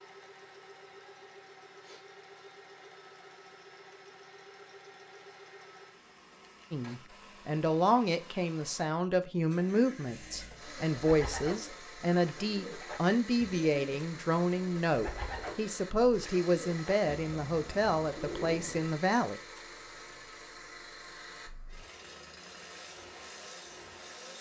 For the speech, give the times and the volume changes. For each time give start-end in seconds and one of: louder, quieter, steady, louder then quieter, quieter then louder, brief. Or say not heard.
6.7-19.4 steady.